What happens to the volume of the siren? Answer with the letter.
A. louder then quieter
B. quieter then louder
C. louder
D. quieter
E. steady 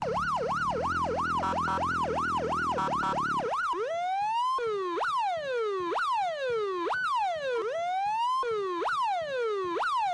E.